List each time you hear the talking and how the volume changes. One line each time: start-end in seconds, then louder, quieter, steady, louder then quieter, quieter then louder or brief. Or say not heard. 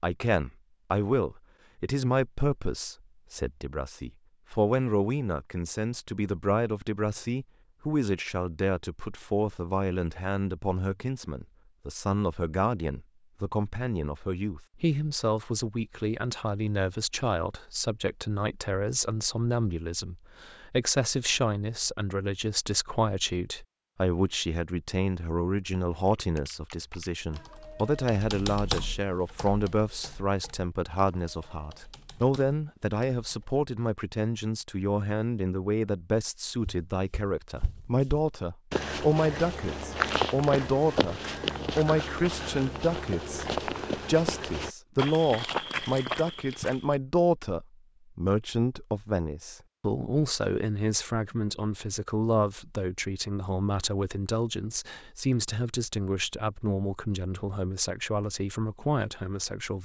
0.0-59.8 steady.